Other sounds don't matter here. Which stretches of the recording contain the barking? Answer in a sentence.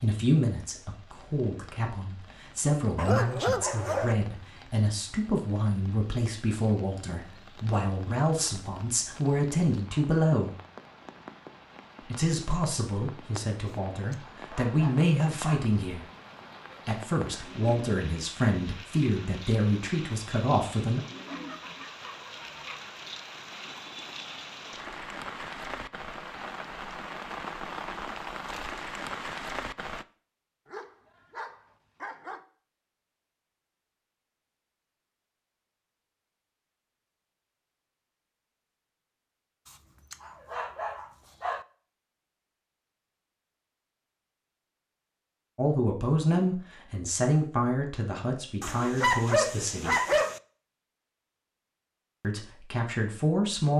The barking can be heard from 3.0 to 4.2 s, from 13.7 to 15.7 s, from 21.2 to 22.8 s, from 30.6 to 32.4 s, from 39.6 to 41.6 s and from 48.6 to 50.4 s.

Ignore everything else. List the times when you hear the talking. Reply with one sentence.
You can hear the talking from 0.0 to 10.6 s, from 12.1 to 16.1 s, from 16.9 to 21.0 s, from 45.5 to 50.0 s and from 52.2 to 53.7 s.